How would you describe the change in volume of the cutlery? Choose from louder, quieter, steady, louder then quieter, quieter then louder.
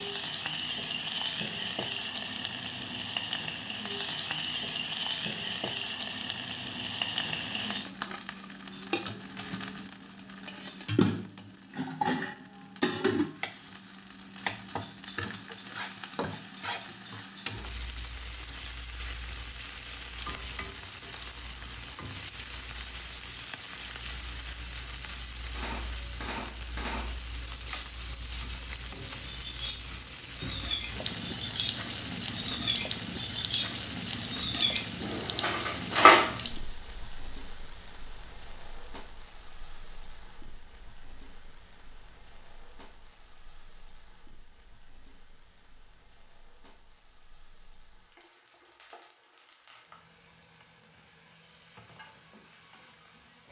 louder.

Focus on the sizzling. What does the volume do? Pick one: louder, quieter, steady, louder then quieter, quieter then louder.
quieter.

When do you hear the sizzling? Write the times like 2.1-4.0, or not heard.
0.0-53.4.